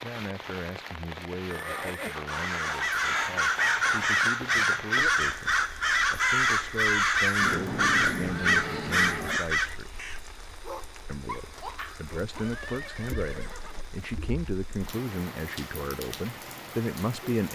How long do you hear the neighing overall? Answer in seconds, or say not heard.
4 s.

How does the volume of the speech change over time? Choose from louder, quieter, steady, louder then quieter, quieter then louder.
louder.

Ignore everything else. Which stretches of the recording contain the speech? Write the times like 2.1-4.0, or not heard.
0.0-10.0, 11.1-17.5.